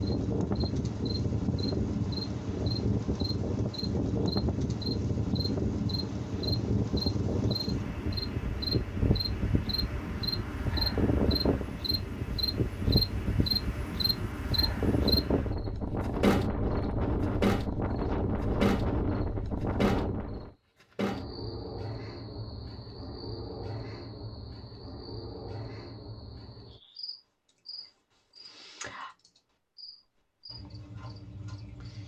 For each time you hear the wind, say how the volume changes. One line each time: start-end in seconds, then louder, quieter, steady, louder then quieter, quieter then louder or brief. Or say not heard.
0.0-20.5 steady.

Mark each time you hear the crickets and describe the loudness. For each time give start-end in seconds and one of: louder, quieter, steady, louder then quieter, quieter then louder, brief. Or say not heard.
0.0-32.0 louder then quieter.